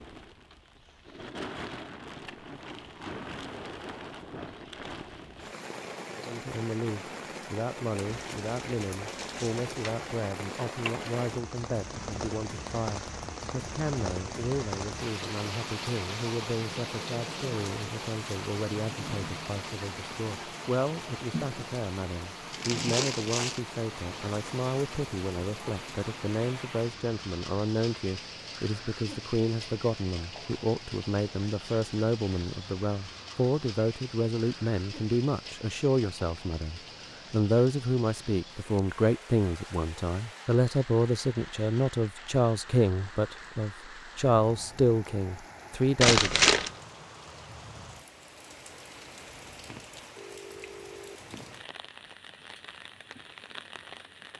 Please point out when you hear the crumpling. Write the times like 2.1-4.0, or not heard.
8.1-10.1, 22.5-23.6, 46.0-46.7.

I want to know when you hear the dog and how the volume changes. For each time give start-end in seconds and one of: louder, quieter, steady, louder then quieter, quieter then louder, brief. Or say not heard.
not heard.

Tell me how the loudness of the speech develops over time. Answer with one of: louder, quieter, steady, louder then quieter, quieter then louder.
louder.